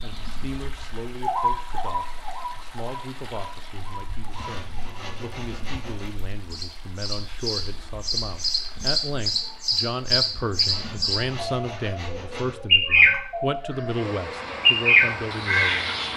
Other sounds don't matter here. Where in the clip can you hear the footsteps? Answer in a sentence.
The footsteps can't be heard in this clip.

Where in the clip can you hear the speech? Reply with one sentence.
You can hear the speech from 0.0 to 16.0 s.